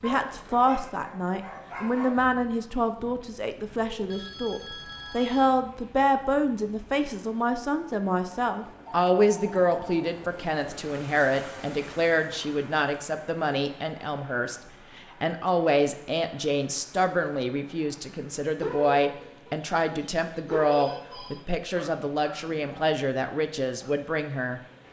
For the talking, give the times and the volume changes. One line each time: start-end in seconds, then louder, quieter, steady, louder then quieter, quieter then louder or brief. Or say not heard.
0.0-24.6 steady.